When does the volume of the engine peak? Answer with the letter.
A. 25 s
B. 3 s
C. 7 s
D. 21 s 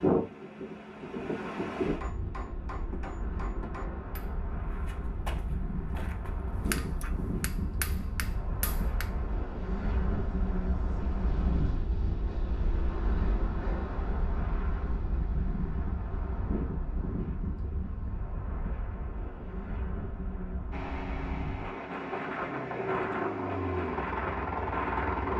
A.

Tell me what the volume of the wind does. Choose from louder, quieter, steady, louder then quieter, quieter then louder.
steady.